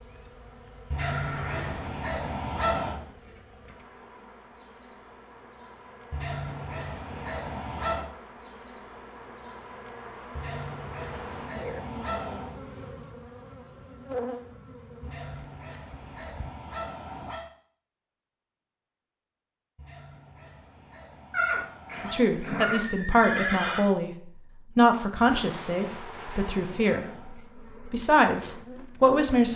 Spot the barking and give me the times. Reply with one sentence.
You can hear the barking from 0.9 to 3.0 s, from 6.1 to 8.1 s, from 10.3 to 12.6 s, from 15.0 to 17.4 s, from 19.8 to 22.4 s and from 25.4 to 27.4 s.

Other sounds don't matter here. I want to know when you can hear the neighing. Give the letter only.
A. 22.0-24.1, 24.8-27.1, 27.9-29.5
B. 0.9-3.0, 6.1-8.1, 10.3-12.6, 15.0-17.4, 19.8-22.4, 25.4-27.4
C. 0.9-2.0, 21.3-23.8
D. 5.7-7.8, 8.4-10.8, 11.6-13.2
C.